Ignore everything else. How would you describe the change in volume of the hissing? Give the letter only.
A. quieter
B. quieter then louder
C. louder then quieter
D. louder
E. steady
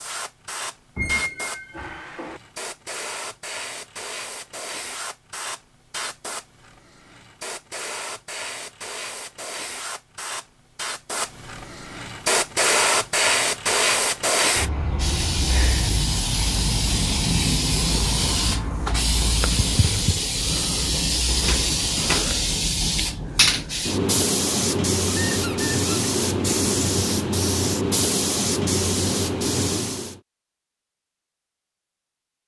D.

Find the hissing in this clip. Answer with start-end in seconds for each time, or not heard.
0.0-30.1.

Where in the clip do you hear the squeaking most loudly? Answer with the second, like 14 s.
1 s.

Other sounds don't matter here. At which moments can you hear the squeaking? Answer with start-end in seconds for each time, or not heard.
0.9-2.4, 25.1-26.1.